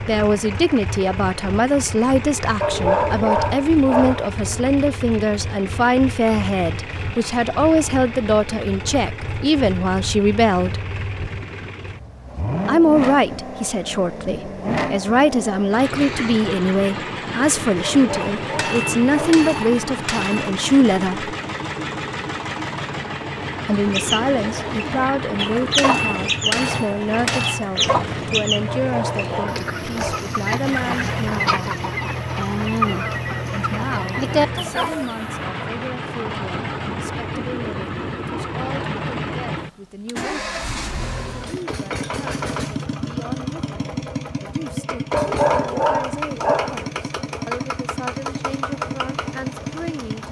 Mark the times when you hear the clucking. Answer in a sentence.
You can hear the clucking from 23.9 to 35.4 s.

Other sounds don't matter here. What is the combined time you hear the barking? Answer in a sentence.
You can hear the barking for 7 seconds altogether.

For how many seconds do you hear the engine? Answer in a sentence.
You can hear the engine for 50 seconds altogether.